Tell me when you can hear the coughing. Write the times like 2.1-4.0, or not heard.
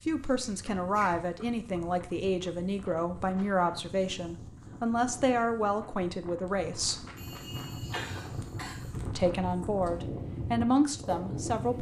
0.4-1.1, 7.2-8.9.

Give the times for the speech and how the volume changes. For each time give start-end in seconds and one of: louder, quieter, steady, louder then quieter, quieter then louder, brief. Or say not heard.
0.1-7.0 steady
9.1-11.7 brief.